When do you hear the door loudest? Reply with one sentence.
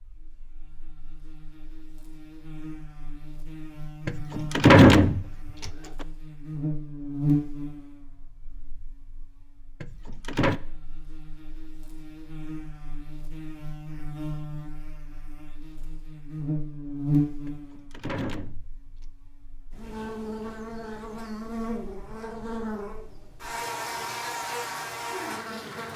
The volume of the door peaks at 5 seconds.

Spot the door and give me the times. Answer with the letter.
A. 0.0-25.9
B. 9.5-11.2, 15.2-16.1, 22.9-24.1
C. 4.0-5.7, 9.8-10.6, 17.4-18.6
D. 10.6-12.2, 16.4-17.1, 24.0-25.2
C.